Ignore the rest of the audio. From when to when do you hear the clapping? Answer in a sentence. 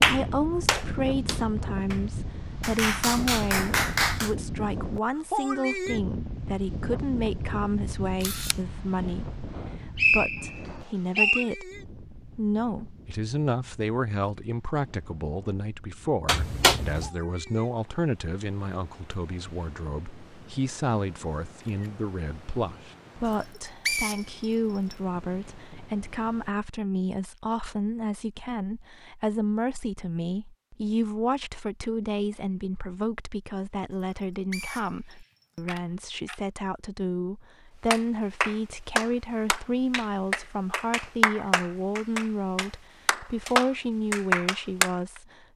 You can hear the clapping from 0.0 to 4.3 s and from 37.9 to 45.2 s.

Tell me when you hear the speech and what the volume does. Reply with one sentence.
You can hear the speech from 0.0 to 45.5 s, at a steady volume.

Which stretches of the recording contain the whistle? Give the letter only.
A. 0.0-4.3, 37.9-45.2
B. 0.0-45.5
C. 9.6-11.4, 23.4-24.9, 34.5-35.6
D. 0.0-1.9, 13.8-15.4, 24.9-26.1
C.